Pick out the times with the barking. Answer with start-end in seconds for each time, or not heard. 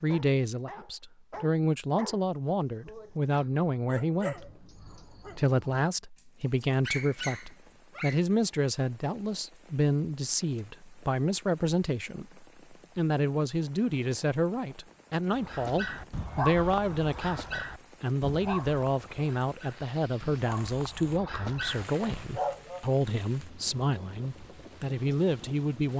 0.0-5.8, 6.6-8.2, 15.3-22.9.